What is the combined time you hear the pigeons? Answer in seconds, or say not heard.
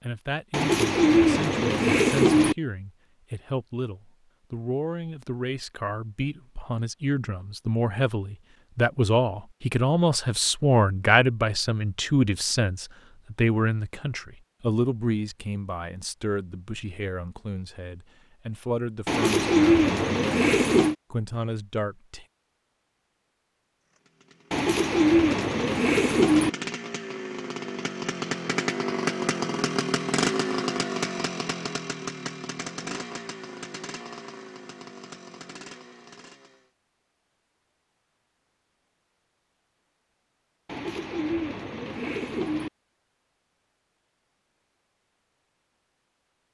8 s.